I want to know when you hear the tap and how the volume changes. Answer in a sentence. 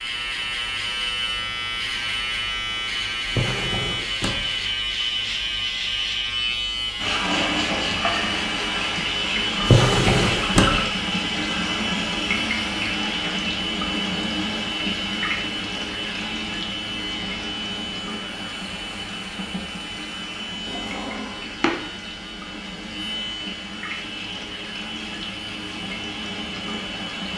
The tap can be heard from 7.0 to 27.3 s, getting quieter.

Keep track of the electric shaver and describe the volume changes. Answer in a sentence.
The volume of the electric shaver goes down.